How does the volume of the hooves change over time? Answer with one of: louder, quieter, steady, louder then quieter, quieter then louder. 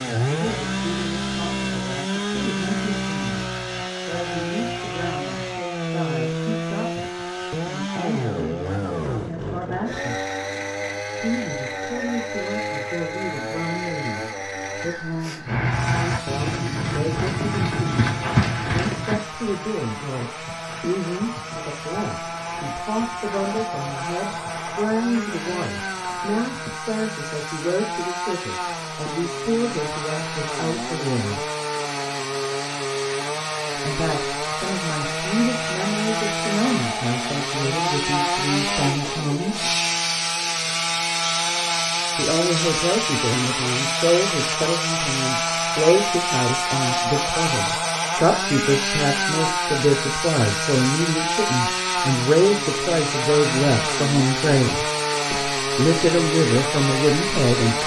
quieter.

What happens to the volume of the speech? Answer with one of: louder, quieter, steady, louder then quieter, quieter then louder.
louder.